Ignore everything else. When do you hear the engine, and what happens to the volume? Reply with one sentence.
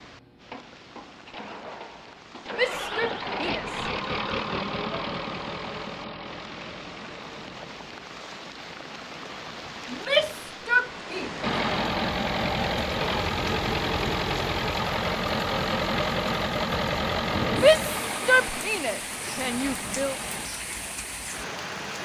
The engine can be heard from 0.0 to 7.8 s, getting louder then quieter; and from 11.4 to 20.5 s, getting quieter.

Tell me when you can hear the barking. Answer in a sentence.
You can't hear the barking here.